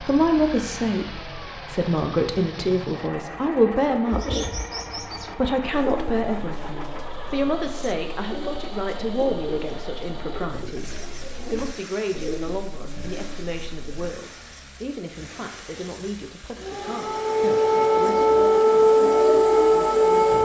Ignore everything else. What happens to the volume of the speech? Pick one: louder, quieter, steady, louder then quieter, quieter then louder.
quieter.